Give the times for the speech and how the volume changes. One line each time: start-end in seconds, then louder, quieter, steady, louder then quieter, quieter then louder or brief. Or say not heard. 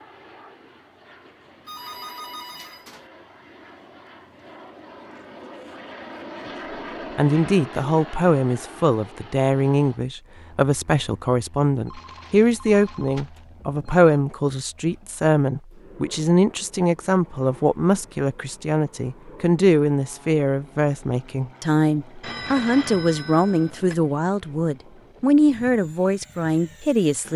7.2-27.3 steady.